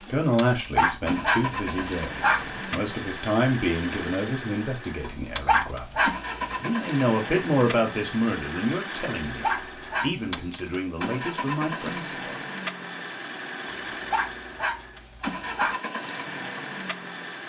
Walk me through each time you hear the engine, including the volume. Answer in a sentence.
You can hear the engine from 0.0 to 17.4 s, at a steady volume.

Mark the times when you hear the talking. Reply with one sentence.
The talking can be heard from 0.1 to 12.3 s.